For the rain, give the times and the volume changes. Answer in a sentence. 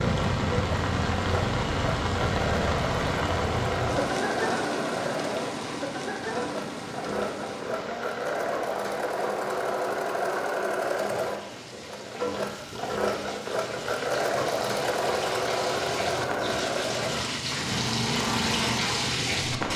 The rain can be heard from 0.0 to 19.7 s, getting quieter then louder.